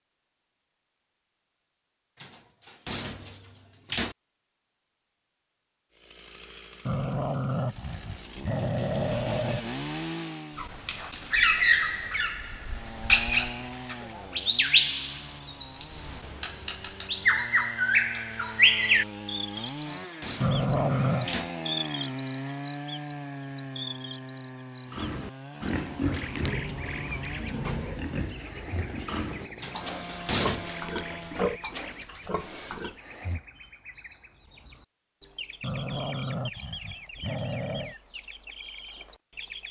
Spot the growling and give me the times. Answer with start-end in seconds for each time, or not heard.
6.8-9.7, 20.4-21.3, 35.6-38.0.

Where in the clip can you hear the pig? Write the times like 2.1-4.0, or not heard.
24.9-33.0.